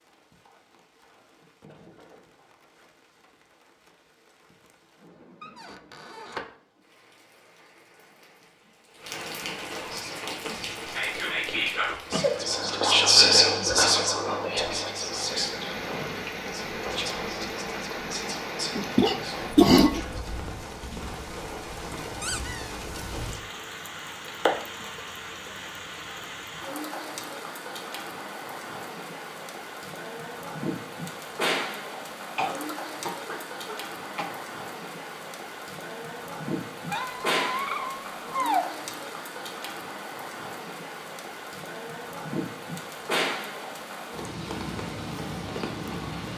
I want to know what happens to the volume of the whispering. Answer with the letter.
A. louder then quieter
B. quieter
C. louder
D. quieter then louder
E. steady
A.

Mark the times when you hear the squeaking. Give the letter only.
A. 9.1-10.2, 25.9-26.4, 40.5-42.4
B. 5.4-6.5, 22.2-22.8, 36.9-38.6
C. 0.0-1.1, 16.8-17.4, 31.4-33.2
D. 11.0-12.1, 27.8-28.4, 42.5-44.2
B.